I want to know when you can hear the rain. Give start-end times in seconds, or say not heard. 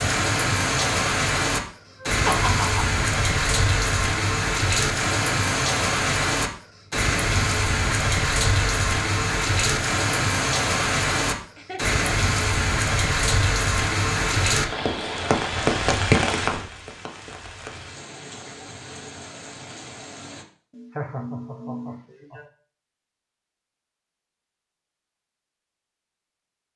0.0-20.4.